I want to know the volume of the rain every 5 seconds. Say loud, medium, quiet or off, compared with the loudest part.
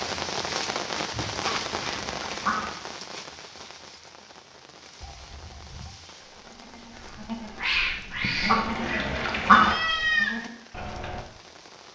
loud, quiet, quiet.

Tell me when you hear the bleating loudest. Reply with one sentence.
The volume of the bleating peaks at 10 seconds.